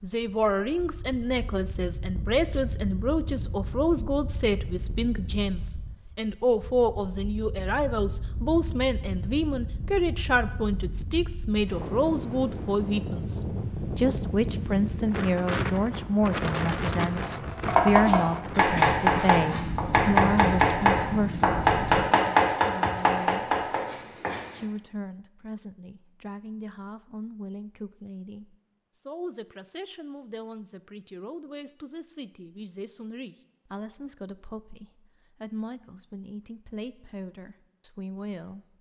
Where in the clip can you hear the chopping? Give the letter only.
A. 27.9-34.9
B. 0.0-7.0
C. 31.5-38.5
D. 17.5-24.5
D.